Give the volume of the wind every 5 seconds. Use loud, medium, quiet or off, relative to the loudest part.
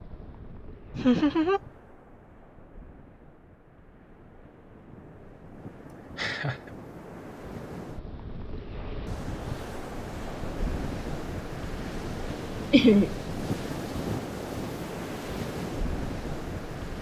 quiet, medium, loud, loud.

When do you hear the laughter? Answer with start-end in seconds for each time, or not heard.
0.9-1.6, 6.2-6.8, 12.7-13.1.